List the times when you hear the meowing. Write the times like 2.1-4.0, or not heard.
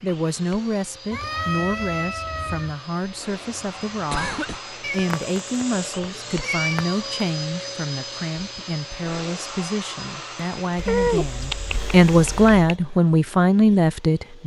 1.1-2.8, 4.8-7.2, 10.8-12.8.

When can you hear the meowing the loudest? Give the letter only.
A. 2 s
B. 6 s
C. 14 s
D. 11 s
D.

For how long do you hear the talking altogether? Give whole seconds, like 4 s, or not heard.
14 s.